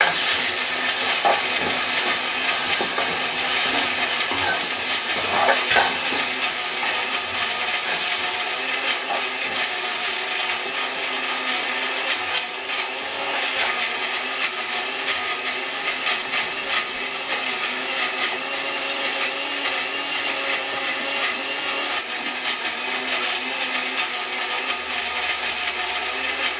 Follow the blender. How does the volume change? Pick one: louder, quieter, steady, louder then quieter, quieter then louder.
steady.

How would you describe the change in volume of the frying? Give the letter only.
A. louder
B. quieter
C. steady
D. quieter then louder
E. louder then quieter
B.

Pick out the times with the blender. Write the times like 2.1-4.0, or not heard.
0.0-26.5.